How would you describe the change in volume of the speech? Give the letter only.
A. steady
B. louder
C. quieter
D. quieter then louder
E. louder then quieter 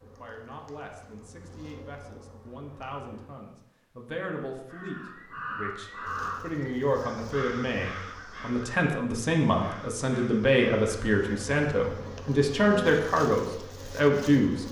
B.